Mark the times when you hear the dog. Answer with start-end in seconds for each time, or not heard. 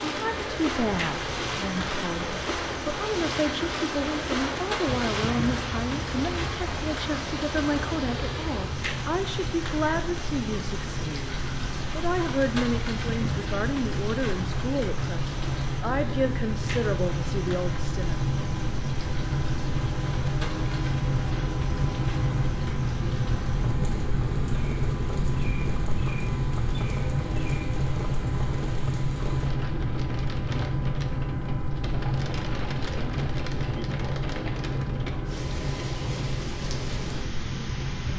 not heard.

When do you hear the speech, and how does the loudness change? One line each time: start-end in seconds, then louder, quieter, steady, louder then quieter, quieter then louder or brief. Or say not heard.
0.1-18.2 steady.